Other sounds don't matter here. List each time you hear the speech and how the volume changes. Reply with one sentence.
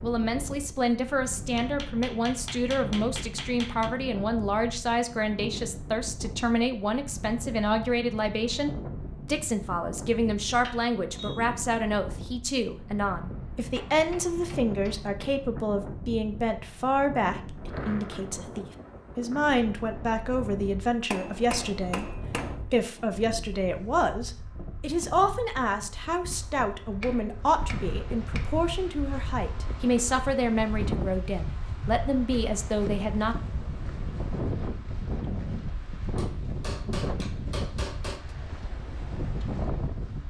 The speech can be heard from 0.0 to 33.4 s, at a steady volume.